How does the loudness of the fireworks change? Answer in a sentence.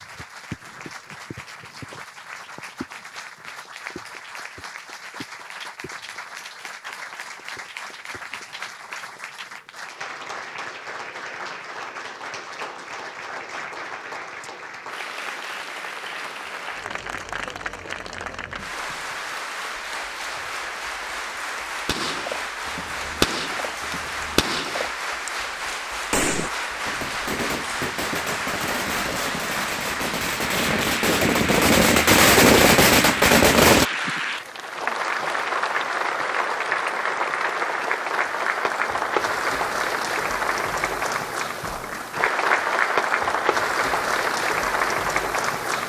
The loudness of the fireworks goes up.